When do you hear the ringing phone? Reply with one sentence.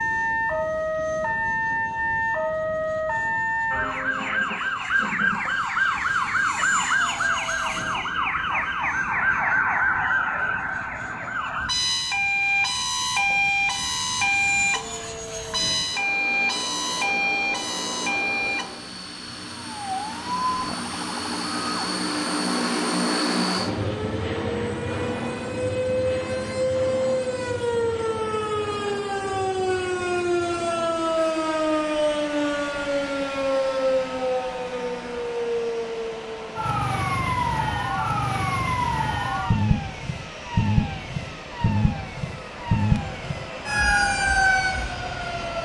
You can hear the ringing phone from 14.7 to 15.6 s.